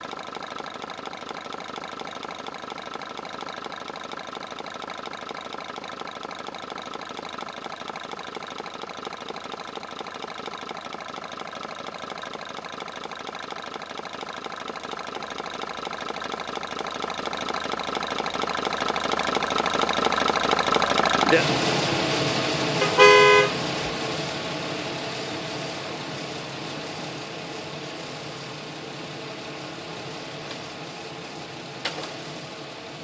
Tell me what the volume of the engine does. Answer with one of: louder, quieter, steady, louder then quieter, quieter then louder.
louder then quieter.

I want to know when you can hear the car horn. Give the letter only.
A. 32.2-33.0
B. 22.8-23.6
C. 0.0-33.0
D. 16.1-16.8
B.